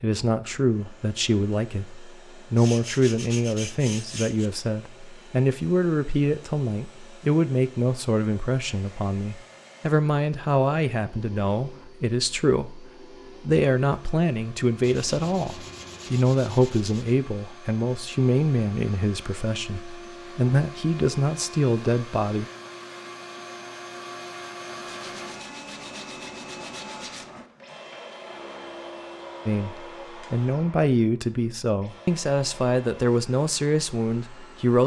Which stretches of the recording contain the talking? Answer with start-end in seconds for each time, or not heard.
0.0-22.4, 29.4-34.8.